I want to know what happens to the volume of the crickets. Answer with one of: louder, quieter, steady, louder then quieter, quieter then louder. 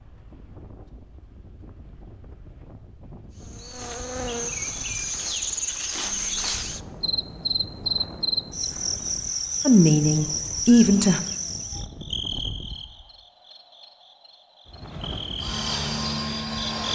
quieter.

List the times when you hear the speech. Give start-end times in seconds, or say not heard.
9.7-11.2.